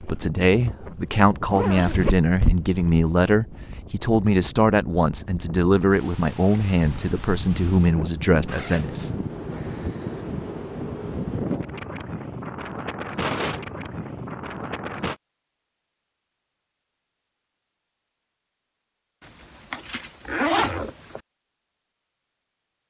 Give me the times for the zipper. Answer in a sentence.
You can hear the zipper from 1.5 to 3.1 s, from 8.4 to 9.1 s and from 19.2 to 21.2 s.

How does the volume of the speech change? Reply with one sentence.
The volume of the speech stays about the same.